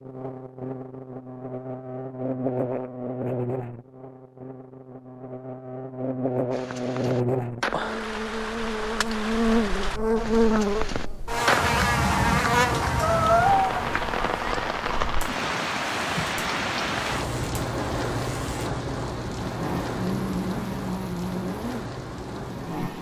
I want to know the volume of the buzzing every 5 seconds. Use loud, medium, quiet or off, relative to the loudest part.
medium, loud, loud, medium, medium.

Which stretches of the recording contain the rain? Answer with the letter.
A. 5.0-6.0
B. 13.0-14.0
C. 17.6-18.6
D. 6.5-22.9
D.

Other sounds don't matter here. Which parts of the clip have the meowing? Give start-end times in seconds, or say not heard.
13.0-14.0.